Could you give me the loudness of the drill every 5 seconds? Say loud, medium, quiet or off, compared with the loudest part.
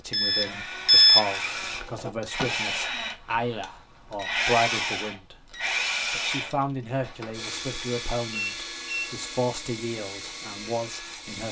loud, loud, medium.